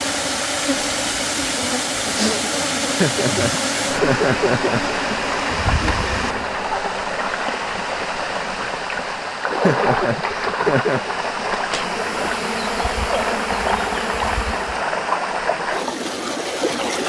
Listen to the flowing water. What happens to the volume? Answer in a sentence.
The loudness of the flowing water stays about the same.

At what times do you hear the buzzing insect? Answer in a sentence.
The buzzing insect can be heard from 0.0 to 6.6 s and from 11.8 to 14.8 s.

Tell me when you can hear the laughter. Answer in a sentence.
You can hear the laughter from 3.0 to 5.0 s and from 9.6 to 11.1 s.